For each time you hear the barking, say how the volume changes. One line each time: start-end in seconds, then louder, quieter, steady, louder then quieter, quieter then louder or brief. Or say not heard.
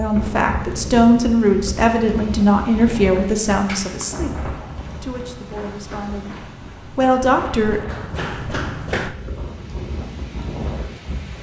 not heard.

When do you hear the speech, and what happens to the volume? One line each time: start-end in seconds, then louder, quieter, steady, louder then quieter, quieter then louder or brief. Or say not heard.
0.0-7.8 quieter then louder.